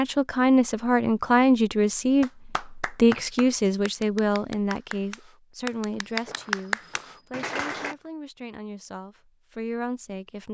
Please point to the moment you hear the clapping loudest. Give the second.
7 s.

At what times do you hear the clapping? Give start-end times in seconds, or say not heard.
2.2-8.0.